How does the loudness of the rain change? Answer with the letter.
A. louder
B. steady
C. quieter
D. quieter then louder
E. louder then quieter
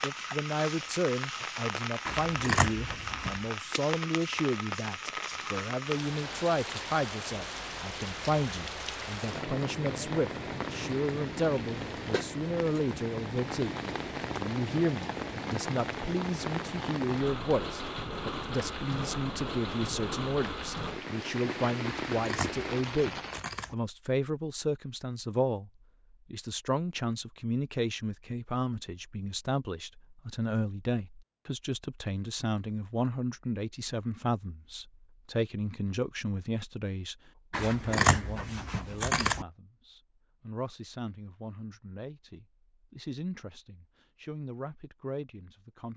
B.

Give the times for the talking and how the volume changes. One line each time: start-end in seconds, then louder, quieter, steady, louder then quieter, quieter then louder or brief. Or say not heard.
0.0-25.7 steady
26.3-45.9 quieter.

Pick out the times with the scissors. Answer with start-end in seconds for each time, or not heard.
2.0-3.5, 22.1-23.8, 37.5-39.5.